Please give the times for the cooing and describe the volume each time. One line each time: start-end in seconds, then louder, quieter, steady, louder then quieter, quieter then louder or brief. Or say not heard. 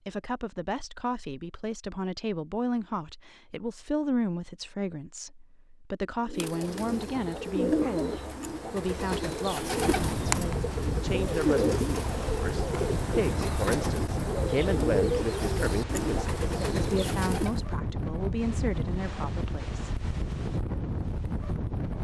6.2-17.6 steady.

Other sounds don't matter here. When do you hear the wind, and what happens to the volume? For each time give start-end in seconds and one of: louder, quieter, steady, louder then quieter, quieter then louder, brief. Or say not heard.
9.8-22.0 steady.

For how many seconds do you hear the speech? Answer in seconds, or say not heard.
20 s.